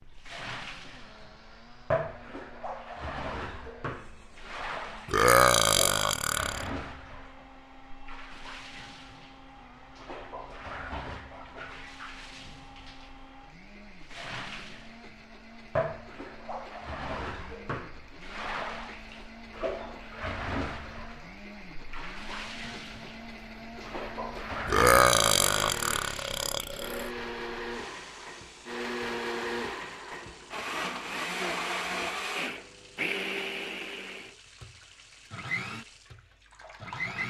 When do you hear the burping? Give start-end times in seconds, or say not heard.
5.0-6.7, 24.6-27.1.